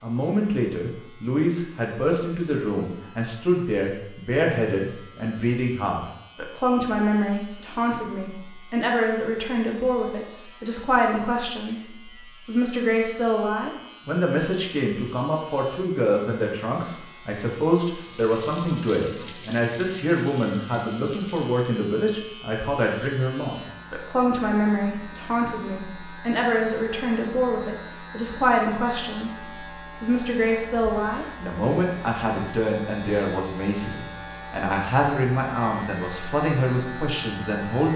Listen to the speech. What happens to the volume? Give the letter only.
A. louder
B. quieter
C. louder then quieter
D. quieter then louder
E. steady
E.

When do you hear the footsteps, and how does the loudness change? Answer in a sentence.
You can't hear the footsteps here.